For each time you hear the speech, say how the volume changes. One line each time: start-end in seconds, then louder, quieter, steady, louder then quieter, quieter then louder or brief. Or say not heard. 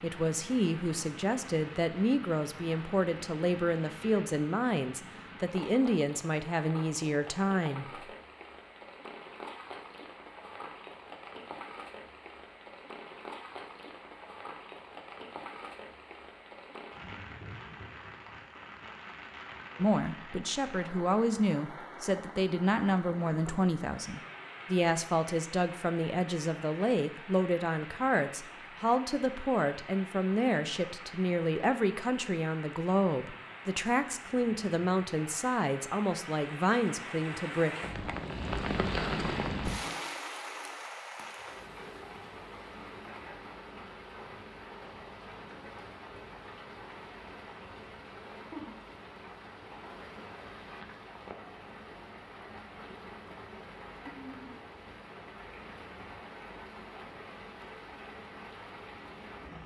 0.0-7.8 steady
19.8-37.8 steady.